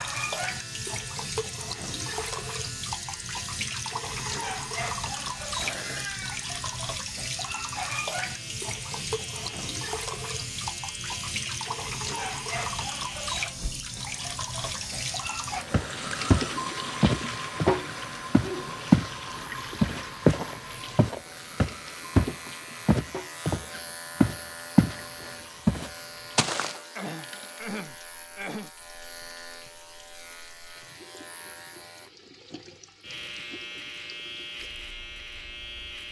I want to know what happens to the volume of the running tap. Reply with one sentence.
The volume of the running tap goes down.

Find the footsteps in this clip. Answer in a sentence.
You can hear the footsteps from 15.7 to 19.1 s, from 19.8 to 25.0 s and from 25.6 to 26.8 s.